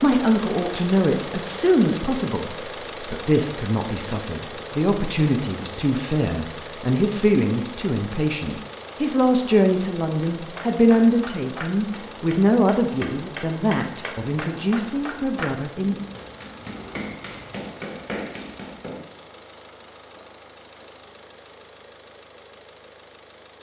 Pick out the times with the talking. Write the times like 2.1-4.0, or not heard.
0.0-15.9.